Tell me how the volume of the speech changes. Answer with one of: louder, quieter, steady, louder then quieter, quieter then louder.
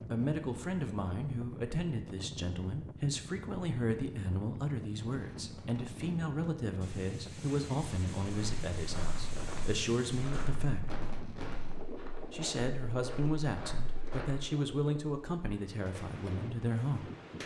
steady.